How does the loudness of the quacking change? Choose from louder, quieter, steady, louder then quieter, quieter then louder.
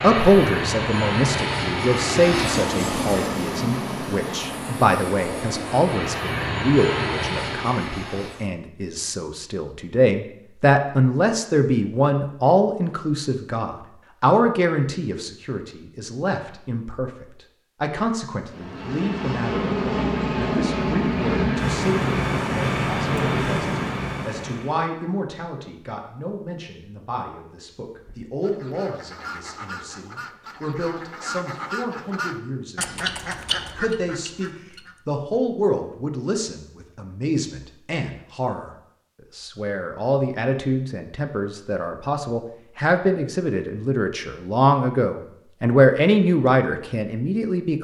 louder.